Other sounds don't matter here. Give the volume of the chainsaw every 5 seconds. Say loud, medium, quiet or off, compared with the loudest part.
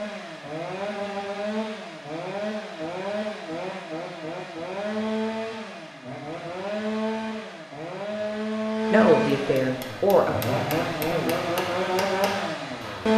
medium, loud, loud.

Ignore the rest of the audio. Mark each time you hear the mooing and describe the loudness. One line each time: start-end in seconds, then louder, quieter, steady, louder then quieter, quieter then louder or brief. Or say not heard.
not heard.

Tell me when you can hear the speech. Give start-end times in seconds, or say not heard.
8.9-11.6.